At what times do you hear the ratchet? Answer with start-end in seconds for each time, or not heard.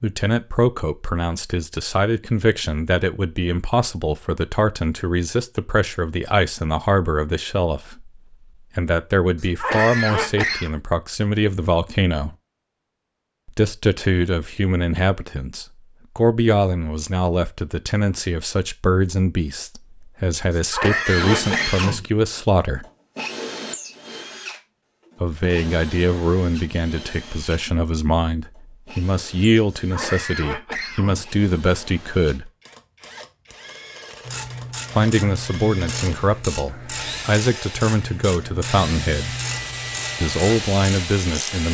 34.2-41.5.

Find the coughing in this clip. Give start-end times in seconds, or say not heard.
9.4-10.7, 20.5-22.1, 29.7-31.2.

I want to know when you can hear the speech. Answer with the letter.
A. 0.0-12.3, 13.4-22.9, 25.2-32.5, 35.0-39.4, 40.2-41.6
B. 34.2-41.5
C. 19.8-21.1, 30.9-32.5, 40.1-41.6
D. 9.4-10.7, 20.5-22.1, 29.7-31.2
A.